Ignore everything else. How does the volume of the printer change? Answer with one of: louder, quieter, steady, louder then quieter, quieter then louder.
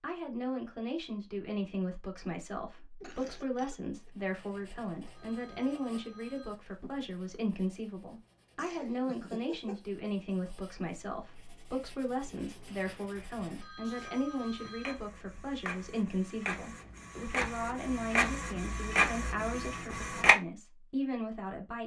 louder.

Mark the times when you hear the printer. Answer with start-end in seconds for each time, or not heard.
12.3-20.4.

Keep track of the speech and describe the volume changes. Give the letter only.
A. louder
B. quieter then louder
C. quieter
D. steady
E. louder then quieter
D.